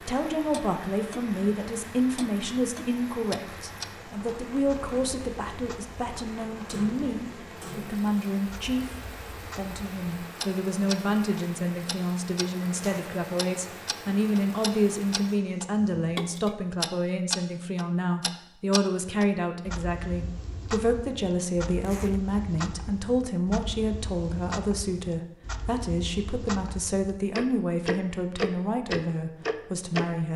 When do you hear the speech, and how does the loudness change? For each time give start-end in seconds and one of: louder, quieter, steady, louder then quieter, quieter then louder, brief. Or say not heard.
0.0-30.3 steady.